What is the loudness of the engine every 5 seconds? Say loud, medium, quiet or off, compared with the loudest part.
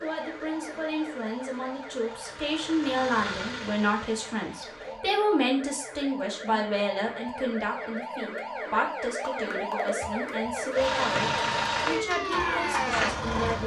quiet, off, loud.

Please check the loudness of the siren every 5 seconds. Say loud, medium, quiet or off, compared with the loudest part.
medium, loud, loud.